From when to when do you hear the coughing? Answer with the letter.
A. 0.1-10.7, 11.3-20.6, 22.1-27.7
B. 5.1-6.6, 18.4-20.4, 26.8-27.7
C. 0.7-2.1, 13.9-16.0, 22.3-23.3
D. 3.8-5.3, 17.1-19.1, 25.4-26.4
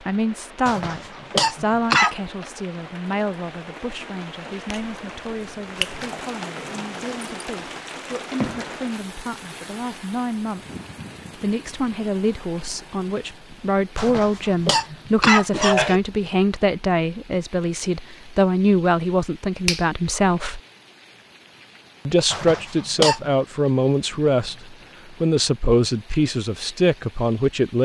C.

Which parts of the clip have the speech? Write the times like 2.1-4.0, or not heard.
0.1-10.7, 11.3-20.6, 22.1-27.7.